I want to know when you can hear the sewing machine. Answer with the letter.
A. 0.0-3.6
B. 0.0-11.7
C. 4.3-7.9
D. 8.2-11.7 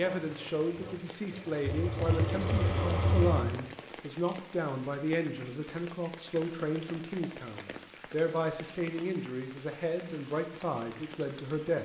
A.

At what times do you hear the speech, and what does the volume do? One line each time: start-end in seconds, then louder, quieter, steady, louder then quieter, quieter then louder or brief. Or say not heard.
0.0-11.7 steady.